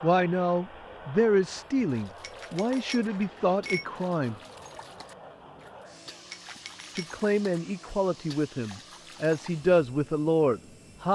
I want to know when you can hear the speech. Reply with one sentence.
The speech can be heard from 0.0 to 4.3 s and from 7.0 to 11.1 s.